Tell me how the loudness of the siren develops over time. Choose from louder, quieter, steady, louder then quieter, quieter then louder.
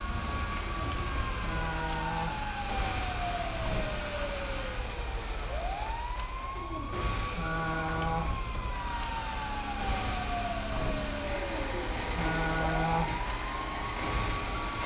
steady.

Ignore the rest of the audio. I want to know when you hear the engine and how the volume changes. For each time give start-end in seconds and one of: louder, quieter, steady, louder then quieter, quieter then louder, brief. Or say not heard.
0.0-4.9 steady
8.6-14.8 steady.